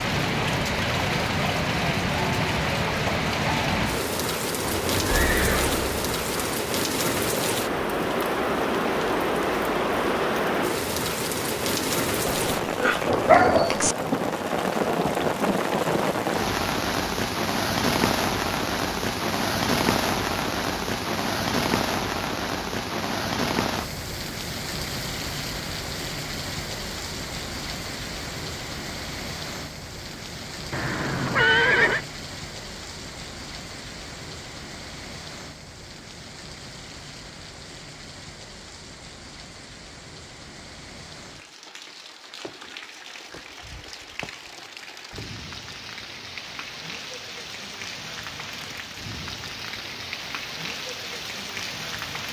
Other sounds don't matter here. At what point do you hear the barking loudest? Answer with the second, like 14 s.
13 s.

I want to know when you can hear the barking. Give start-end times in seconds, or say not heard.
12.2-13.9.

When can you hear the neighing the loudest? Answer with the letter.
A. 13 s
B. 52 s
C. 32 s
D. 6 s
C.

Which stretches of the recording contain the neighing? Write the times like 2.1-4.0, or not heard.
4.6-6.5, 30.7-32.0.